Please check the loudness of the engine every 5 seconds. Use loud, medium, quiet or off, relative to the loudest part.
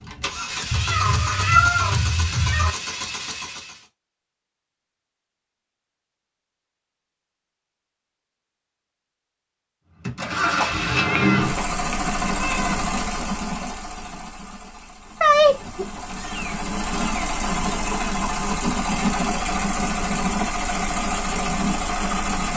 medium, off, loud, loud, loud.